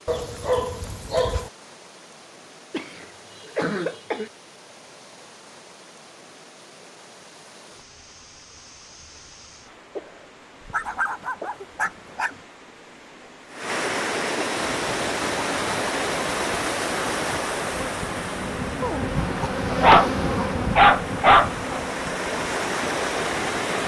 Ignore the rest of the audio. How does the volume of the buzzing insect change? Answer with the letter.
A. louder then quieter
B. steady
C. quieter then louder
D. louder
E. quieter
A.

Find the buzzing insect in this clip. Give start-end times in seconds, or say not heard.
14.8-23.8.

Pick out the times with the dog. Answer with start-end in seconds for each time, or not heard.
0.1-1.5, 10.7-12.3, 19.7-21.8.